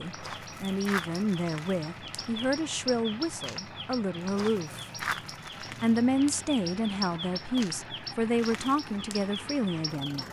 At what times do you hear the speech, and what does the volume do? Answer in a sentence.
You can hear the speech from 0.0 to 4.8 s, at a steady volume; and from 5.8 to 10.2 s, at a steady volume.